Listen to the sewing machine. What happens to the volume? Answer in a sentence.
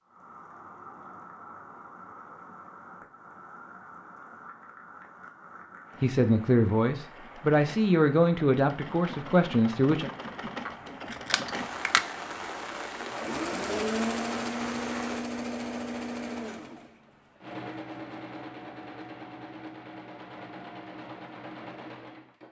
The volume of the sewing machine goes up, then down.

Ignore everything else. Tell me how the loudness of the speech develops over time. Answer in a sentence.
The volume of the speech stays about the same.